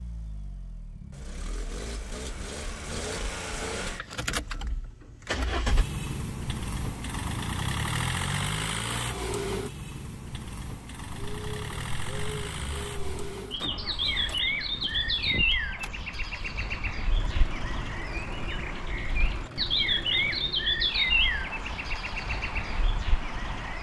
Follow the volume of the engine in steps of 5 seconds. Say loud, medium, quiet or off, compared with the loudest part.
medium, loud, medium, medium, medium.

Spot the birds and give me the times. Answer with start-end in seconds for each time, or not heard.
11.0-23.7.